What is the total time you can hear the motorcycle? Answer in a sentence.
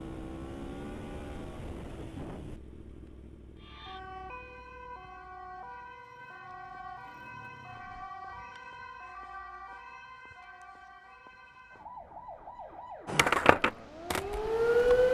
The motorcycle can be heard for 8 seconds in total.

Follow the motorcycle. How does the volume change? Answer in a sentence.
The volume of the motorcycle goes down, then up.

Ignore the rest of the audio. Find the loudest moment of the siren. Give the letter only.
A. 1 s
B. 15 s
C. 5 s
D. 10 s
B.